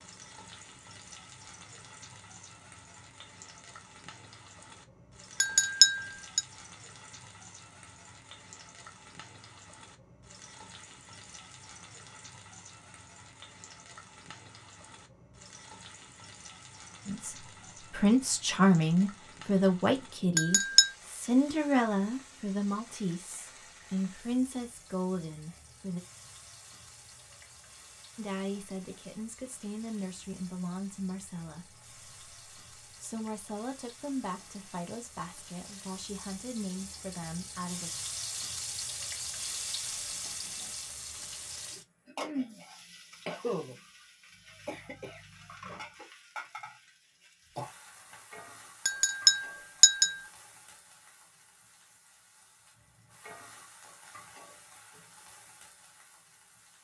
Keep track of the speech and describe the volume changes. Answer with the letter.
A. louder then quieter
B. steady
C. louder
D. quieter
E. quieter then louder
D.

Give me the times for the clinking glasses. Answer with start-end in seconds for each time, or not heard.
5.4-6.4, 20.4-20.9, 48.9-50.2.